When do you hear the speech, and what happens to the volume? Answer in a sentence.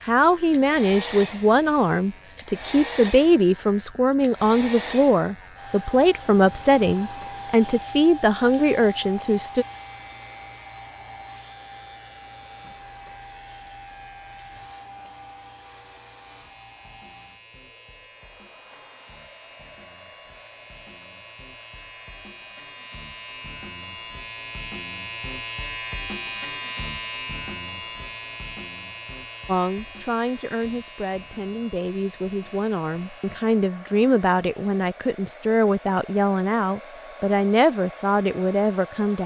You can hear the speech from 0.1 to 9.7 s, at a steady volume; and from 29.4 to 39.2 s, getting louder.